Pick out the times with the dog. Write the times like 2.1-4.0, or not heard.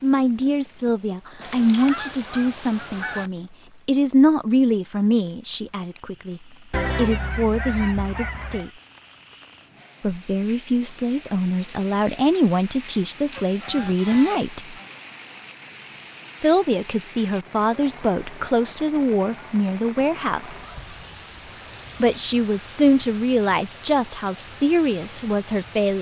not heard.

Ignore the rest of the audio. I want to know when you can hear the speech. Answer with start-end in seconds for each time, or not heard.
0.0-8.7, 10.0-14.8, 16.4-20.6, 22.0-25.9.